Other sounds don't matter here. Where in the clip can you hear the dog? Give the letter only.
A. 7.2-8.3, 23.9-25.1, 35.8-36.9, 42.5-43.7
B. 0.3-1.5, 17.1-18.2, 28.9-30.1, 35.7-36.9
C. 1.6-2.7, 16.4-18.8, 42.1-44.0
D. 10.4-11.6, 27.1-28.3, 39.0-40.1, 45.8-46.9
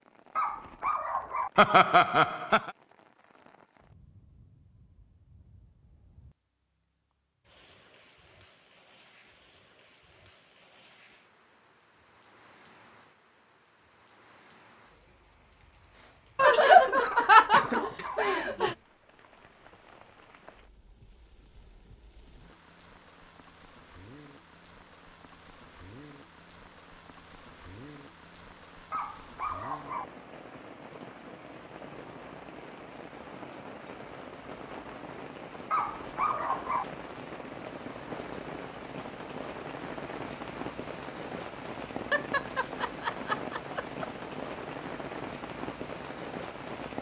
B.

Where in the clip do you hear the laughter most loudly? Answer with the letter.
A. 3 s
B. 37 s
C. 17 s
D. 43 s
C.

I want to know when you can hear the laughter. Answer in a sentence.
The laughter can be heard from 1.6 to 2.7 s, from 16.4 to 18.8 s and from 42.1 to 44.0 s.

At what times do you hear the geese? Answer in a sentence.
The geese can't be heard in this clip.